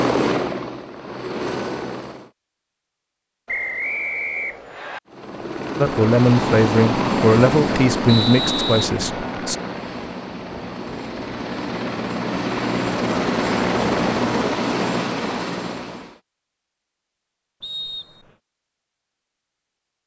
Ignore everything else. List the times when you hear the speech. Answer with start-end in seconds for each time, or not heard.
5.8-9.6.